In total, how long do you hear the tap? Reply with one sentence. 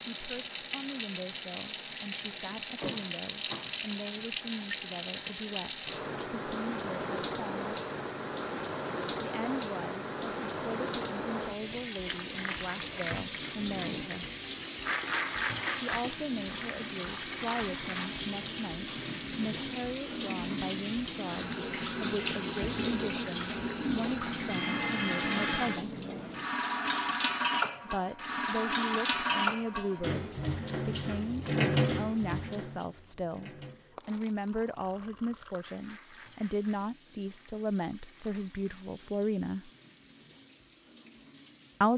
The tap can be heard for 42 seconds in total.